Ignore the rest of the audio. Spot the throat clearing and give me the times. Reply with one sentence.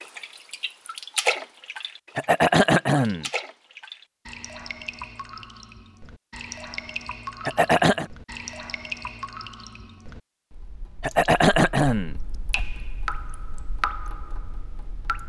You can hear the throat clearing from 2.1 to 3.2 s, from 7.5 to 8.1 s and from 11.0 to 12.6 s.